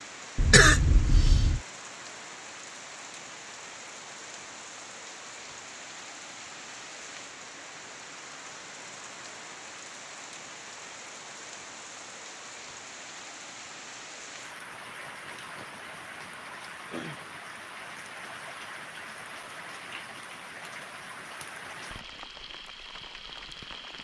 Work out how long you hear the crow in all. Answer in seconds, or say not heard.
not heard.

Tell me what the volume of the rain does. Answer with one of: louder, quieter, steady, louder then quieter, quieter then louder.
steady.